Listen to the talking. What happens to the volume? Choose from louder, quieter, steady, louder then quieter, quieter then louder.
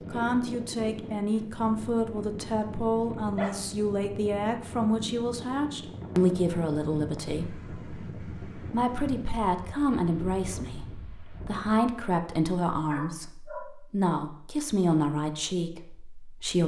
steady.